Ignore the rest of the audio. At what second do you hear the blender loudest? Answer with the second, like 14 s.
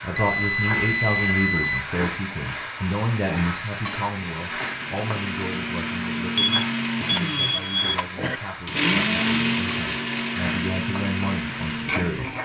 9 s.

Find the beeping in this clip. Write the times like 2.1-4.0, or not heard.
0.1-1.9, 6.3-8.4.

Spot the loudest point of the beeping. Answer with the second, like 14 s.
1 s.